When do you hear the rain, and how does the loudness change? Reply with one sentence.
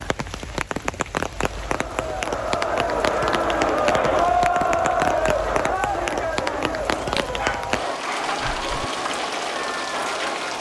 The rain can be heard from 0.0 to 10.5 s, at a steady volume.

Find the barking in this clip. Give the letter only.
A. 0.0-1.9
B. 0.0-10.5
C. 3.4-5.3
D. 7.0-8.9
D.